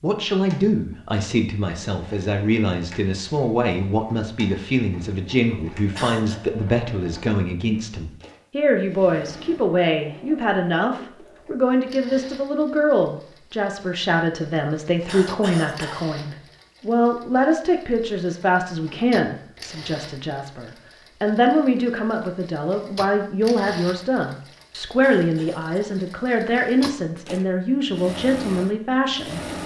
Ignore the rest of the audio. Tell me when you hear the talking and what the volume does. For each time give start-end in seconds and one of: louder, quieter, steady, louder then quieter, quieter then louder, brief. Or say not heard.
0.0-29.4 steady.